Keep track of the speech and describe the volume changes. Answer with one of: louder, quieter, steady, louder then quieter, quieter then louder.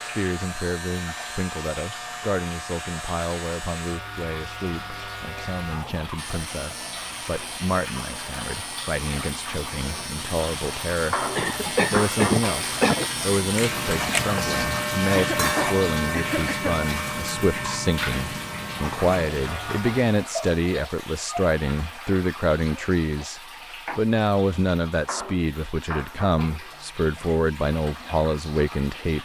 louder.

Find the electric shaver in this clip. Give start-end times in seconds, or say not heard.
0.0-20.1.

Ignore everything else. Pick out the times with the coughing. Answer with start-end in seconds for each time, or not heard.
11.3-13.1, 15.1-16.8.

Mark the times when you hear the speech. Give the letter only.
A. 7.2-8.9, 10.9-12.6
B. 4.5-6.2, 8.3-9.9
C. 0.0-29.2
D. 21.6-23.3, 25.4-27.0
C.